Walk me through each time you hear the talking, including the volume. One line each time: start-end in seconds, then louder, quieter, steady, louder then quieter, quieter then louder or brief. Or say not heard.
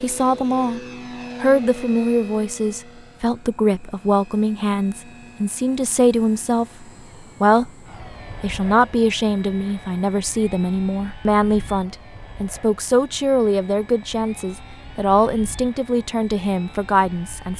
0.0-0.8 brief
1.4-7.7 steady
8.4-17.5 steady.